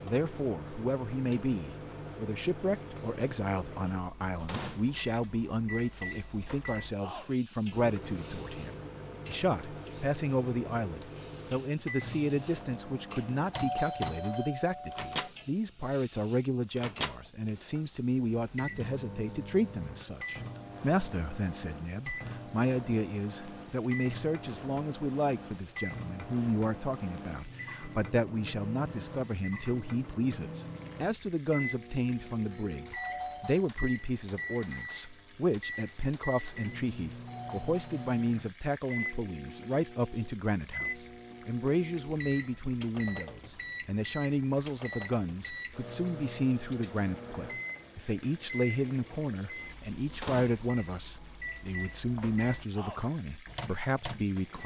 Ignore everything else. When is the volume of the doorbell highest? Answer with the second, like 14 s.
14 s.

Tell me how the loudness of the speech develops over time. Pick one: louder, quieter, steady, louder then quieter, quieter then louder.
steady.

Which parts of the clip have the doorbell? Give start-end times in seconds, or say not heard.
13.5-15.3, 33.0-33.7, 37.2-38.2.